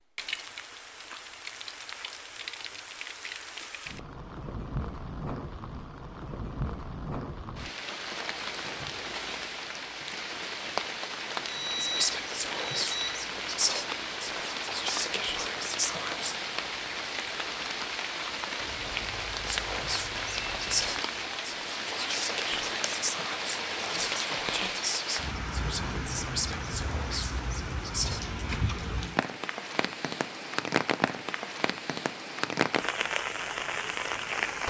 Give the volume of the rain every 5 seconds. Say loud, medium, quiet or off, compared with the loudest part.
medium, medium, loud, loud, loud, loud, loud.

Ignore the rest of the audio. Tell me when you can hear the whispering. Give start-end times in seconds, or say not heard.
11.8-16.4, 19.4-28.2.